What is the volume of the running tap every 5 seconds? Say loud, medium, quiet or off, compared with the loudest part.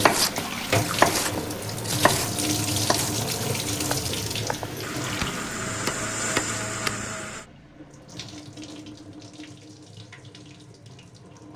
loud, medium, quiet.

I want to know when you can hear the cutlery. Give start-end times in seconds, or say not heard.
not heard.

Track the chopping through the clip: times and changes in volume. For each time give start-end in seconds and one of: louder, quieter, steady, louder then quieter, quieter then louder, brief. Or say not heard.
0.0-7.0 quieter then louder.